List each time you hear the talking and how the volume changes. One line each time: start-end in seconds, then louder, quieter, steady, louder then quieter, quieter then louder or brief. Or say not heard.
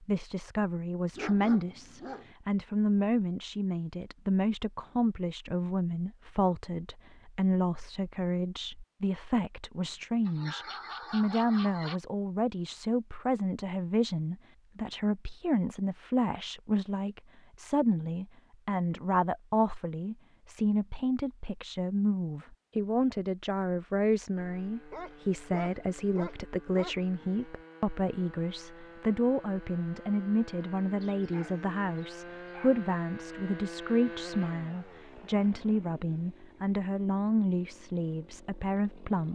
0.0-39.3 steady.